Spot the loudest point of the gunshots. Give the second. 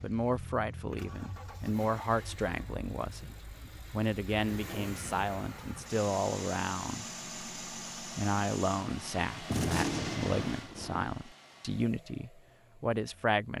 10 s.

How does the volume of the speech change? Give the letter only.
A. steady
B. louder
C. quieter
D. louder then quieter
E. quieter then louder
A.